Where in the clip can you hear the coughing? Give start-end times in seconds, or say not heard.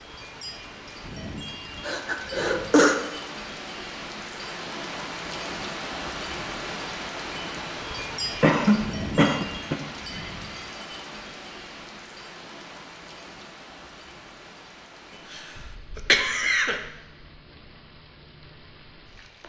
1.8-3.0, 8.4-9.8, 15.3-16.8.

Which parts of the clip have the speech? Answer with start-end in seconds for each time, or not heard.
not heard.